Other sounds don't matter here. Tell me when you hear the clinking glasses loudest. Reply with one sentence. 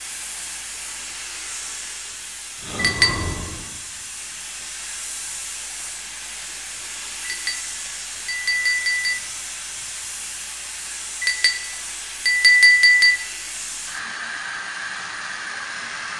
The loudest moment of the clinking glasses is at 13 seconds.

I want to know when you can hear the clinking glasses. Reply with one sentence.
The clinking glasses can be heard from 2.8 to 3.5 s, from 7.2 to 9.2 s and from 11.2 to 13.2 s.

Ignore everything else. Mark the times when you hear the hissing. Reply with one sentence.
You can hear the hissing from 0.0 to 16.1 s.